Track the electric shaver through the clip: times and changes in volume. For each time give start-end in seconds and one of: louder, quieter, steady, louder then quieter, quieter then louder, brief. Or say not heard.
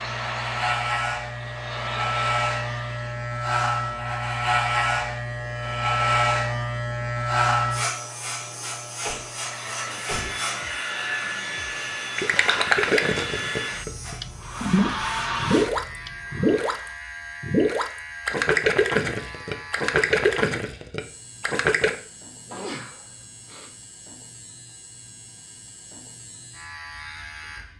0.0-27.7 quieter.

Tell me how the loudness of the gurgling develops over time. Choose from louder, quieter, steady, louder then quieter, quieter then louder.
steady.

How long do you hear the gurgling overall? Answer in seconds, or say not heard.
10 s.